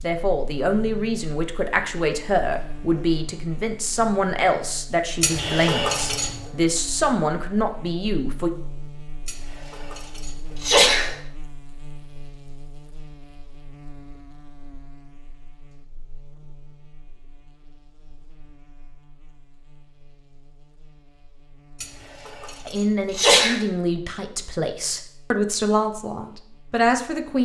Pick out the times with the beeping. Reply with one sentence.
You can hear the beeping from 5.3 to 6.0 s.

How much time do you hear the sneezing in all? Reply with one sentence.
You can hear the sneezing for 5 seconds altogether.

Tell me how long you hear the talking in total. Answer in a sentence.
The talking can be heard for 13 seconds in total.